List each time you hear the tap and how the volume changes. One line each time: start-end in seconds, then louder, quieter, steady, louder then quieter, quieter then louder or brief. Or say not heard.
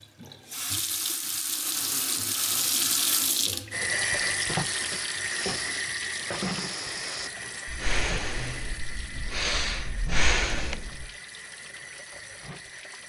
0.0-13.0 quieter.